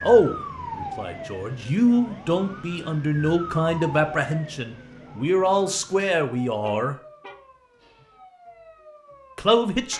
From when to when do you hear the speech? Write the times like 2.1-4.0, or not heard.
0.0-7.0, 9.3-9.9.